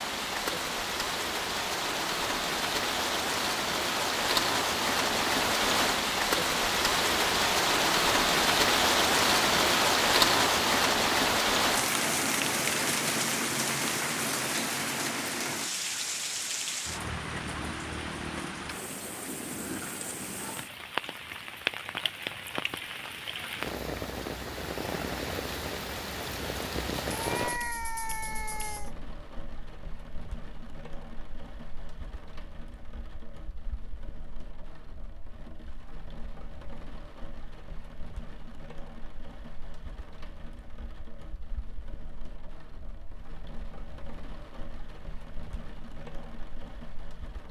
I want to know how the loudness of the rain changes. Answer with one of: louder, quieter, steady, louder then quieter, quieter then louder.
quieter.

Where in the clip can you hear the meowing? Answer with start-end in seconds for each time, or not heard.
27.1-28.9.